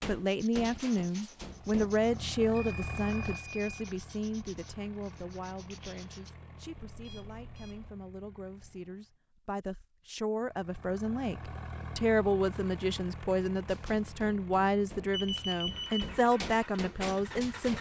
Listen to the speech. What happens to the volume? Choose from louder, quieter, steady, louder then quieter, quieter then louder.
quieter then louder.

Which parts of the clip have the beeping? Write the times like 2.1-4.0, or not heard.
2.5-4.0, 6.9-8.0, 15.1-16.1.